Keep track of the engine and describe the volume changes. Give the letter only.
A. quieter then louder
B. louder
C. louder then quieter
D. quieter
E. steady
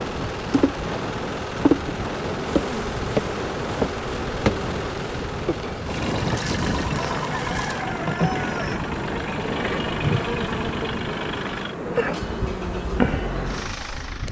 E.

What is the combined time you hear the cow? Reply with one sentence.
The cow can't be heard in this clip.